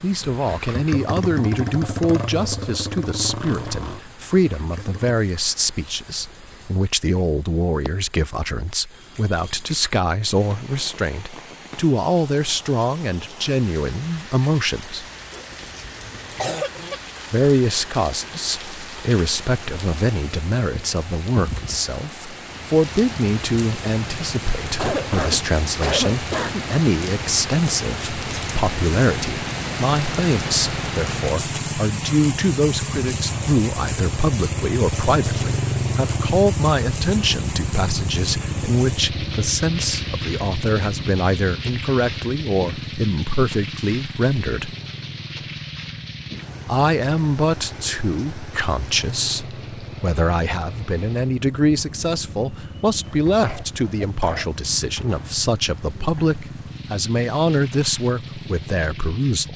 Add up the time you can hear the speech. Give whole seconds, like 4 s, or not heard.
55 s.